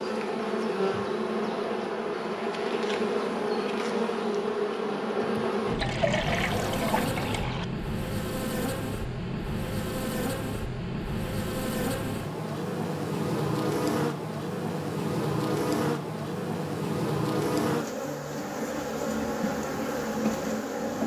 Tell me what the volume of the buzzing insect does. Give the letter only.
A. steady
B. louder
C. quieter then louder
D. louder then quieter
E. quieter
A.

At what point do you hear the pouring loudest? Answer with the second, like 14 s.
6 s.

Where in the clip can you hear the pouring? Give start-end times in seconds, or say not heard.
5.7-7.7.